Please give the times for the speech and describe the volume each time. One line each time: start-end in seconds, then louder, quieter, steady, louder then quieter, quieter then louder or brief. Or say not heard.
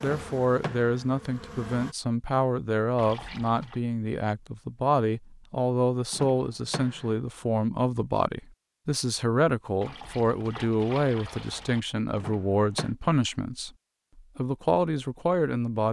0.0-15.8 steady.